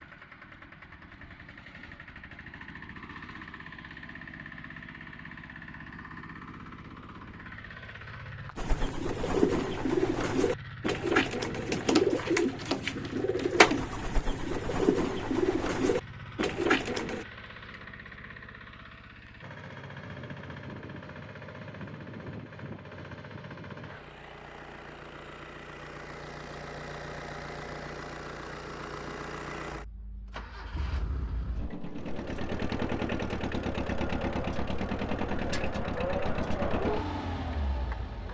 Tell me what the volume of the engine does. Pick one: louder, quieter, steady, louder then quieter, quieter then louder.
louder.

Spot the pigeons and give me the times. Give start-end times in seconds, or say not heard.
8.6-17.2.